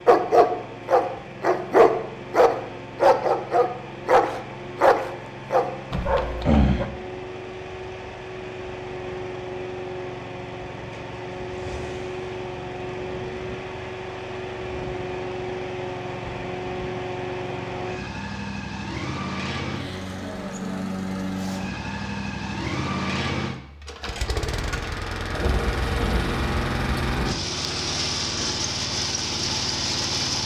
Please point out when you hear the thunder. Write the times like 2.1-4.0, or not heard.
25.3-27.4.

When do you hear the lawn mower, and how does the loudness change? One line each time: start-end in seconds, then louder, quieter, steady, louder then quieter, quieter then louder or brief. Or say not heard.
0.0-30.4 louder.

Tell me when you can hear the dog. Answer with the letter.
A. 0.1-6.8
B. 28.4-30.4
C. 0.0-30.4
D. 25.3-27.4
A.